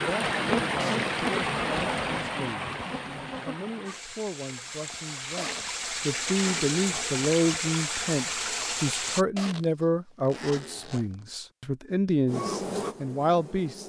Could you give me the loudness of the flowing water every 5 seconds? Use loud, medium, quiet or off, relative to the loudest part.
loud, loud, off.